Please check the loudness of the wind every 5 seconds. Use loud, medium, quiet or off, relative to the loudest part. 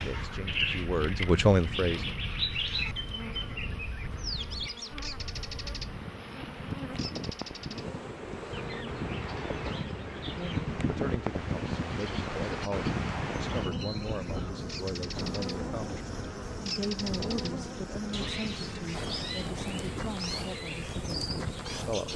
quiet, medium, loud, medium, medium.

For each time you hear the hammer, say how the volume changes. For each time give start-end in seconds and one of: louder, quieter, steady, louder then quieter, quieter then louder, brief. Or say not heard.
not heard.